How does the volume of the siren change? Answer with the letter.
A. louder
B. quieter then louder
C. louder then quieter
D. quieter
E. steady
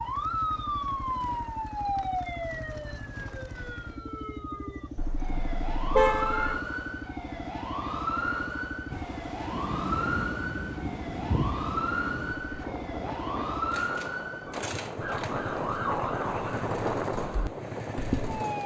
E.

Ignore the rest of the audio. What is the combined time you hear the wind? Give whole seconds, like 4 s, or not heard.
10 s.